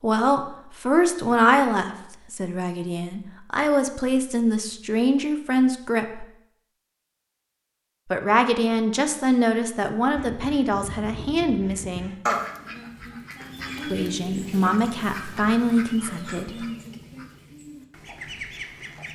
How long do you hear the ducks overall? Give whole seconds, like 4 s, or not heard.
9 s.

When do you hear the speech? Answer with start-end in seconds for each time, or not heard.
0.0-6.2, 8.1-12.2, 13.9-16.6.